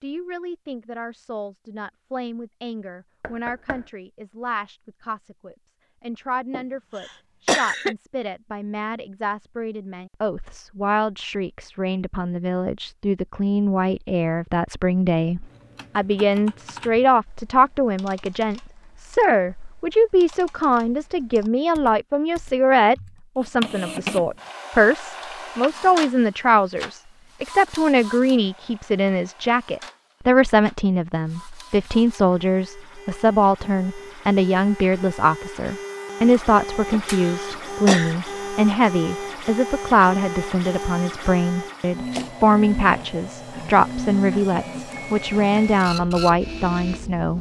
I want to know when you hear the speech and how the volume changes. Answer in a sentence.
You can hear the speech from 0.0 to 47.3 s, getting louder.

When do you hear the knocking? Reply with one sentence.
You can hear the knocking from 3.2 to 3.9 s.